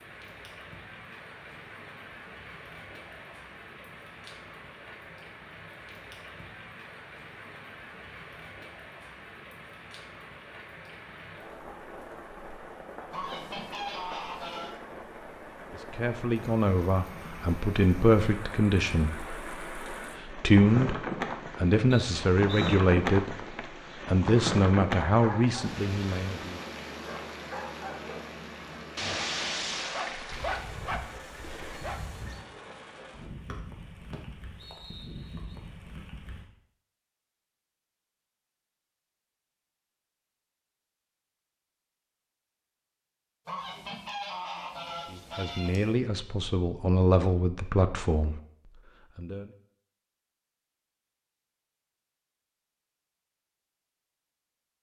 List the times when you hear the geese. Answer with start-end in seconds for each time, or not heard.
13.1-14.8, 30.3-32.5, 43.5-46.0.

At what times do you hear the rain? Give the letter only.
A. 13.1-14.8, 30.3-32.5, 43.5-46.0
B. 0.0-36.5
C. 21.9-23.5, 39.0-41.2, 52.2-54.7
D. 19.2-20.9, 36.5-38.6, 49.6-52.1
B.